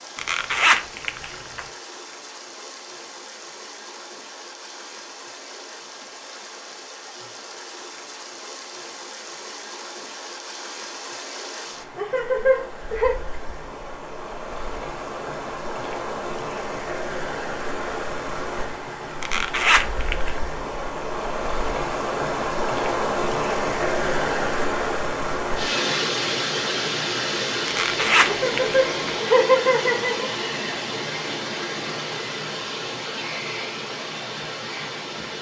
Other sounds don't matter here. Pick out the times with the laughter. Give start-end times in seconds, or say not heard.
11.9-13.2, 28.2-30.3.